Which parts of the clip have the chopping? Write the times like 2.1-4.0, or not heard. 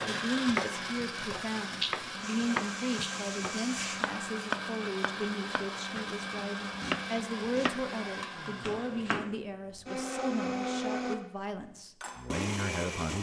0.0-8.0, 8.6-9.3.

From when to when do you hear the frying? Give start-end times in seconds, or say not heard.
2.1-4.0.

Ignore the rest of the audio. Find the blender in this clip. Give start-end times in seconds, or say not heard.
0.0-13.1.